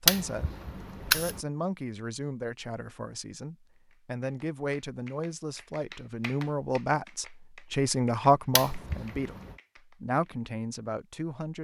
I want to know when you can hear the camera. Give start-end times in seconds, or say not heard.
0.1-1.4, 8.6-9.6.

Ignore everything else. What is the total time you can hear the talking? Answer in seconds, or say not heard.
11 s.